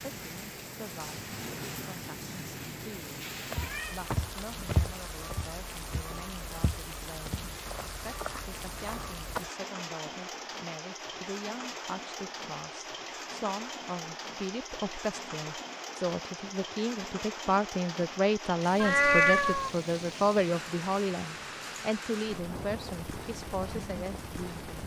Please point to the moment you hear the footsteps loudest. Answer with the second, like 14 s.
5 s.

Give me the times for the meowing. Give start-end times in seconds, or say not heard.
3.5-4.5, 18.8-19.7.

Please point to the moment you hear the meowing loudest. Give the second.
19 s.